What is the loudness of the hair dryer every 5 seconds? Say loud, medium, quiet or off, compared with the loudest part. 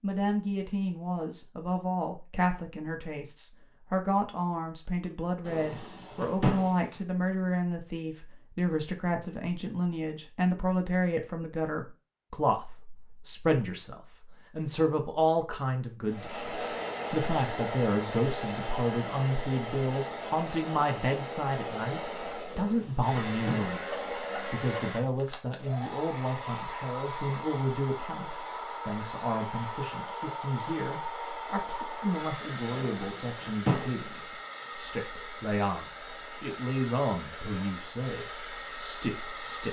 off, off, off, loud, loud, loud, loud, medium.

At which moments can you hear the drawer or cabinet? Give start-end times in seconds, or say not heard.
5.5-7.0, 22.6-23.8, 32.6-34.2.